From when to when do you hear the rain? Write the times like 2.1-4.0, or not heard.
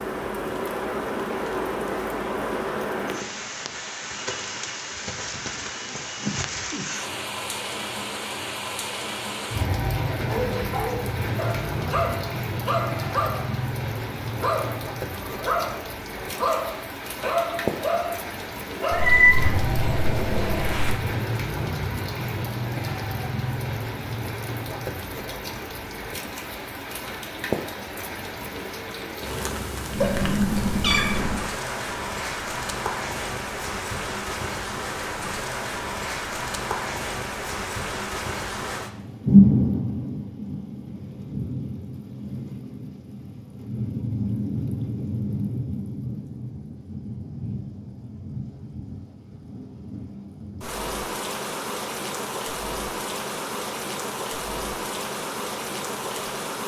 0.0-56.6.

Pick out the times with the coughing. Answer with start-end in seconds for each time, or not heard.
not heard.